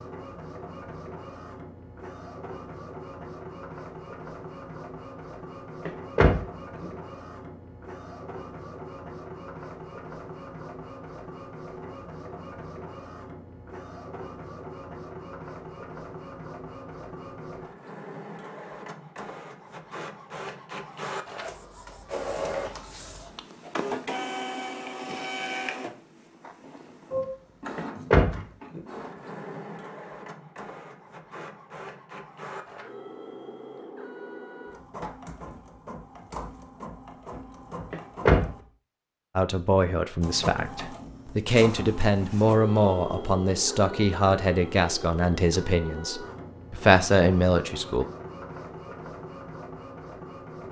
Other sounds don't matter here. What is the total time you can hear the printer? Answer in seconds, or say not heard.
49 s.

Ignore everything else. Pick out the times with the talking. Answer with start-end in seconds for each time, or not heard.
39.4-48.0.